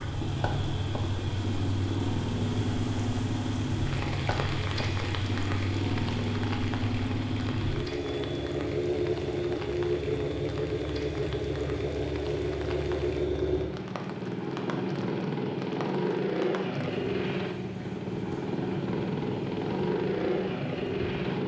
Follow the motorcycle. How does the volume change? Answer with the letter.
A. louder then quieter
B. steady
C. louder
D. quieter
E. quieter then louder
B.